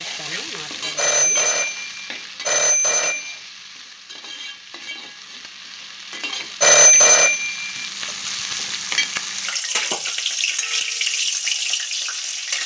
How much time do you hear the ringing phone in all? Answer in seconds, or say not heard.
4 s.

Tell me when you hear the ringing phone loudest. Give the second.
7 s.